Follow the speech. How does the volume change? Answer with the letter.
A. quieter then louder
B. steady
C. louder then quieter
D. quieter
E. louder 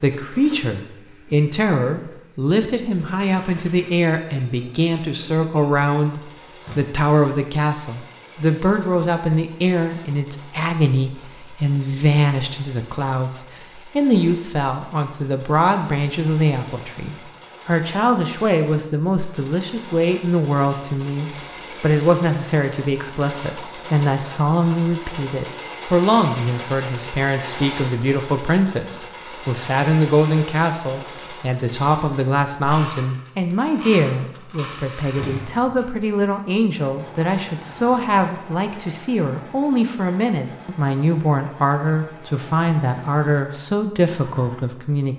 B.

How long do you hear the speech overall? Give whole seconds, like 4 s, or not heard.
45 s.